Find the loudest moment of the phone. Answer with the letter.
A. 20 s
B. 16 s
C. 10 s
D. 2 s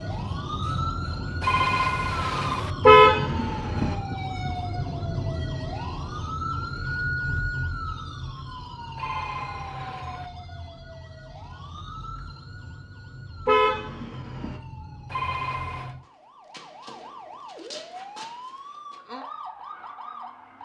D.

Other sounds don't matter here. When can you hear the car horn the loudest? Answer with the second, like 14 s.
3 s.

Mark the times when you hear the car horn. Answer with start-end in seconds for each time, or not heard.
2.9-4.0, 13.4-14.6.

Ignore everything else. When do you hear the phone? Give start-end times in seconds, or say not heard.
1.4-2.7, 8.9-10.3, 15.1-15.9.